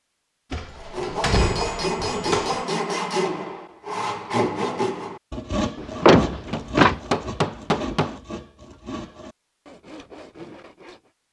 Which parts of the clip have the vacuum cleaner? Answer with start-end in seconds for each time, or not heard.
not heard.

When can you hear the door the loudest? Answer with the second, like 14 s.
6 s.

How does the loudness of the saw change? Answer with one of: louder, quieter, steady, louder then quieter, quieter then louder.
quieter.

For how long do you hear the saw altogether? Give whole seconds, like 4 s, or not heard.
10 s.